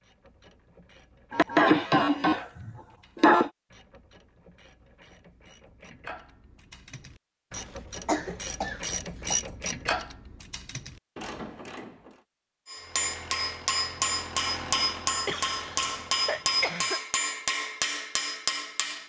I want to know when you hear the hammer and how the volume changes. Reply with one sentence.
You can hear the hammer from 12.7 to 19.0 s, at a steady volume.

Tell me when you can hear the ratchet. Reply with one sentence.
You can hear the ratchet from 0.0 to 12.2 s.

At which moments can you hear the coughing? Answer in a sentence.
The coughing can be heard from 1.3 to 3.5 s, from 7.5 to 9.4 s and from 15.2 to 17.0 s.